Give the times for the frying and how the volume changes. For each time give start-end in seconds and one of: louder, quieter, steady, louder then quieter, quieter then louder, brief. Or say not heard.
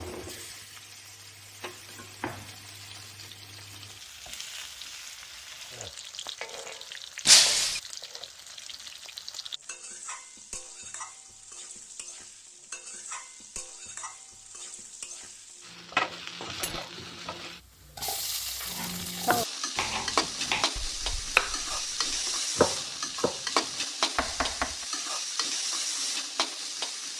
0.0-27.1 louder.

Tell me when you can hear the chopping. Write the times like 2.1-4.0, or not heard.
18.6-23.4, 24.1-24.9.